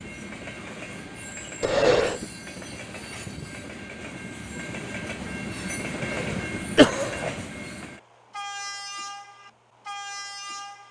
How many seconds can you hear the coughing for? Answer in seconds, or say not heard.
2 s.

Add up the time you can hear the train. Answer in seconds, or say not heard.
11 s.